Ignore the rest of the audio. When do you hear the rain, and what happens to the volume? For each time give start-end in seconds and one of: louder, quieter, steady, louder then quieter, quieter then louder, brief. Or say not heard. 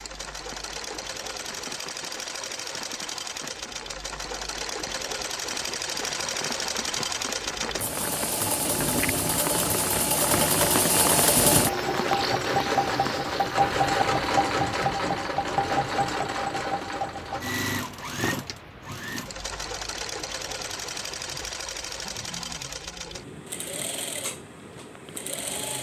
0.0-25.6 louder then quieter.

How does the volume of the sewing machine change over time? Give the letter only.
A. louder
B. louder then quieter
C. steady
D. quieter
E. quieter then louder
B.